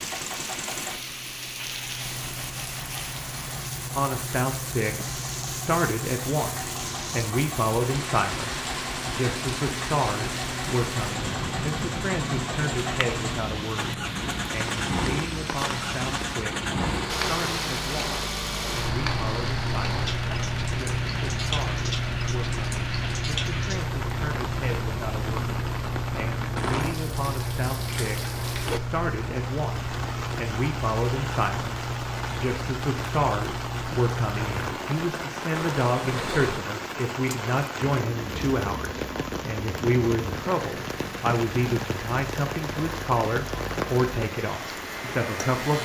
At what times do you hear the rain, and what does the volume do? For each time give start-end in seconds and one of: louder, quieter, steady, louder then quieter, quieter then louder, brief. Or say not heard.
0.0-45.7 steady.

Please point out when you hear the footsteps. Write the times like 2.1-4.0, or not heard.
not heard.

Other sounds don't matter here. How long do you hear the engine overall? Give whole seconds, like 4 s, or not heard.
46 s.